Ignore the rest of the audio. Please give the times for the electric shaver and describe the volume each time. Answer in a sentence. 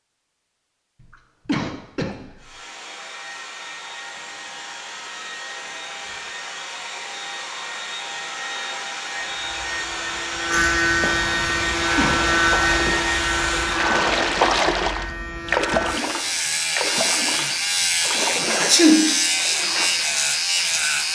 You can hear the electric shaver from 9.2 to 21.1 s, getting quieter then louder.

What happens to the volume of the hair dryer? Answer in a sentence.
The loudness of the hair dryer goes up.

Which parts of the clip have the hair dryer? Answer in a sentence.
You can hear the hair dryer from 2.4 to 13.8 s.